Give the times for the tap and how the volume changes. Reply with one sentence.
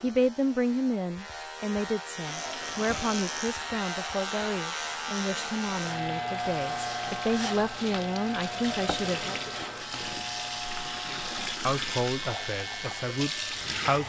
The tap can be heard from 2.2 to 14.0 s, getting louder.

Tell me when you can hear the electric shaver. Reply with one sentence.
The electric shaver can be heard from 0.0 to 14.0 s.